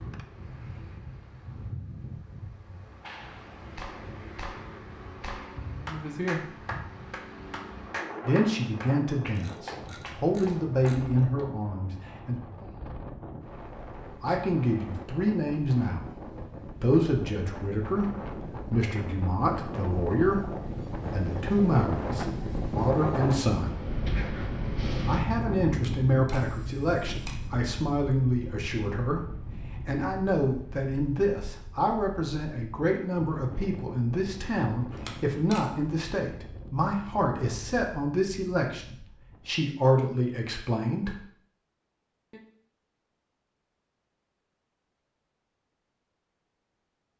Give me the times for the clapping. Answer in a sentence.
You can hear the clapping from 3.0 to 11.4 s.